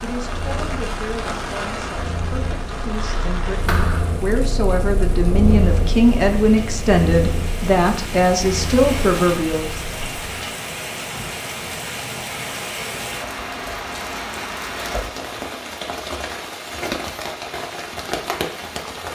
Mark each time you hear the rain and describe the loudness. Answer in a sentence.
The rain can be heard from 0.0 to 19.1 s, getting quieter then louder.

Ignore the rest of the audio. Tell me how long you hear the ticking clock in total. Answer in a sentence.
The ticking clock can't be heard in this clip.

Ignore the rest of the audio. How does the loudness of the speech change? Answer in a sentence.
The loudness of the speech goes up.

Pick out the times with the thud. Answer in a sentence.
The thud can be heard from 3.6 to 4.2 s.